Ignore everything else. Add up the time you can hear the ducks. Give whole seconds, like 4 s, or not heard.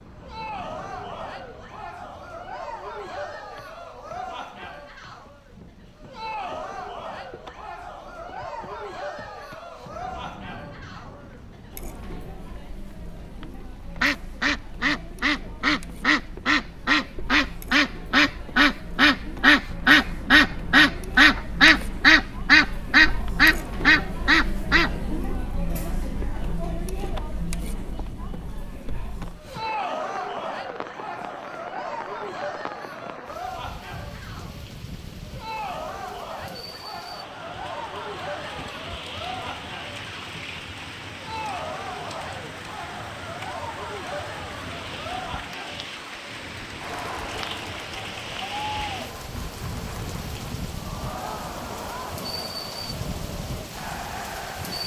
11 s.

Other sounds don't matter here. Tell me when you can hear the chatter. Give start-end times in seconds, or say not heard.
0.1-54.8.